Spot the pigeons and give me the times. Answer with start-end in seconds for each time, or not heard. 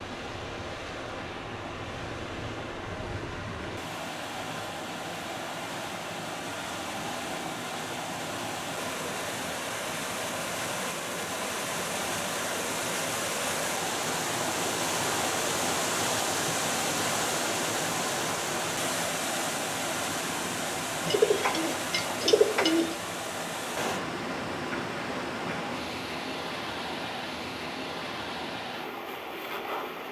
21.1-22.9.